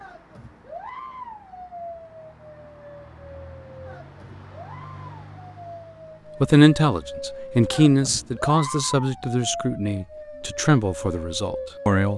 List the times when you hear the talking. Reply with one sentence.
The talking can be heard from 6.4 to 12.1 s.